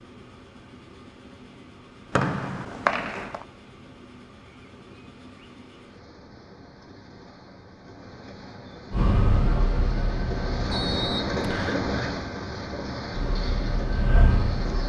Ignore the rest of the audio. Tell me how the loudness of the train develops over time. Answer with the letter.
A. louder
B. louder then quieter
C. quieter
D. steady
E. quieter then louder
A.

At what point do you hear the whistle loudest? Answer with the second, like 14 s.
3 s.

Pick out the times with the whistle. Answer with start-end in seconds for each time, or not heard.
2.1-3.4, 10.7-11.8.